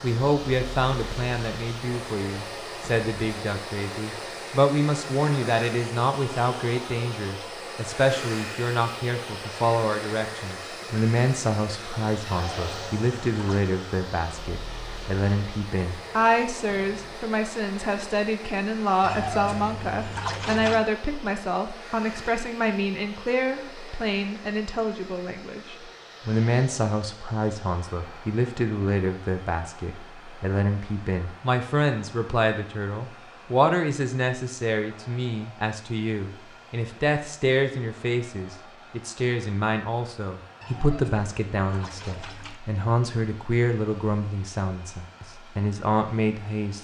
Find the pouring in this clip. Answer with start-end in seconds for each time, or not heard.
12.3-13.8, 19.0-20.9, 40.6-42.6.